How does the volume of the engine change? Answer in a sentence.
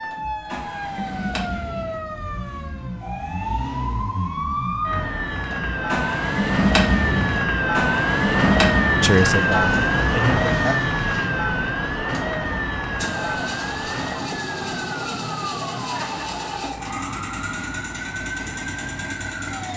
The loudness of the engine goes up, then down.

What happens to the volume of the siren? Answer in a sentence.
The volume of the siren goes up, then down.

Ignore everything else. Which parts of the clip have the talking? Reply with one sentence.
You can hear the talking from 9.0 to 10.8 s.